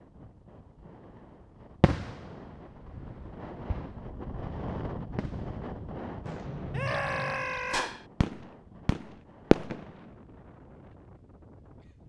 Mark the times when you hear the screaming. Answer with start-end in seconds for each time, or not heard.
6.7-7.9.